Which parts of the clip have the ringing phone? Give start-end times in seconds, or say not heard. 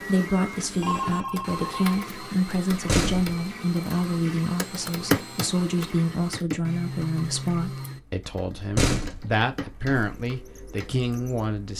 0.8-2.0.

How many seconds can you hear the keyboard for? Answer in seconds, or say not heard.
9 s.